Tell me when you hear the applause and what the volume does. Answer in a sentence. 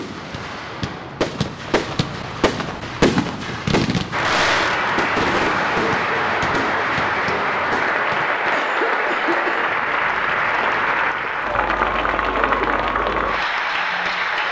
You can hear the applause from 4.1 to 14.4 s, at a steady volume.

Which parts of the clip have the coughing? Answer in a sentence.
The coughing can be heard from 8.3 to 9.7 s.